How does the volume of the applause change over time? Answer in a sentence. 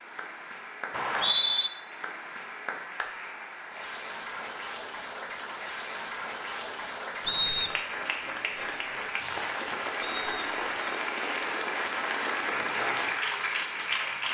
The loudness of the applause goes up.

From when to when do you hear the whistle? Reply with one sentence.
You can hear the whistle from 0.9 to 1.7 s, from 7.2 to 7.8 s and from 10.0 to 10.7 s.